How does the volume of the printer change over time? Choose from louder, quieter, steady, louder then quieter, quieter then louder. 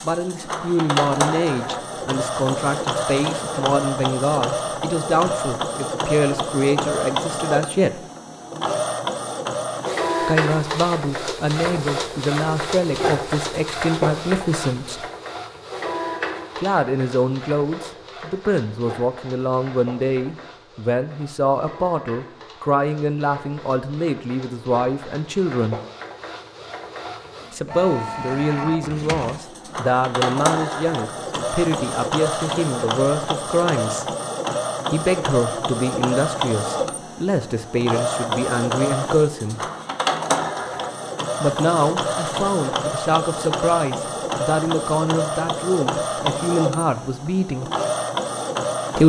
quieter then louder.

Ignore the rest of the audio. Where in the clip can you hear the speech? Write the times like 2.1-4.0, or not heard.
0.0-8.1, 10.2-15.1, 16.6-25.8, 27.5-34.0, 34.9-39.6, 41.4-47.7.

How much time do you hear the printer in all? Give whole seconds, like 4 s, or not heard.
49 s.